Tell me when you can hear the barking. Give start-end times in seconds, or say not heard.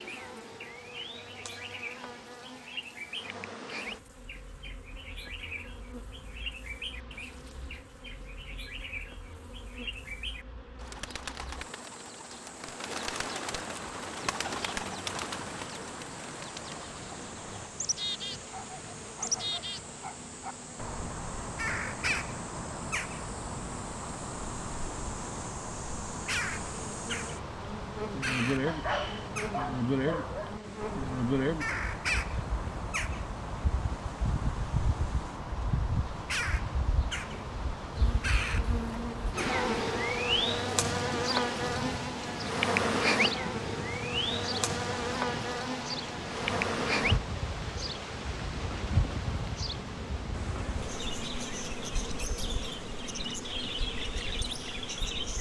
18.5-20.6, 28.6-30.6.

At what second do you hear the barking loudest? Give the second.
29 s.